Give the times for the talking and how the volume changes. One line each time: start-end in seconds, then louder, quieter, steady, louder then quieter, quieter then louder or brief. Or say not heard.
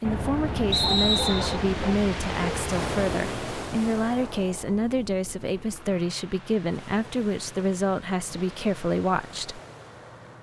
0.0-9.6 steady.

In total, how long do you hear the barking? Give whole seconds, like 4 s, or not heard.
2 s.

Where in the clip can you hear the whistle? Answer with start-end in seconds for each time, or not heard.
0.7-1.6.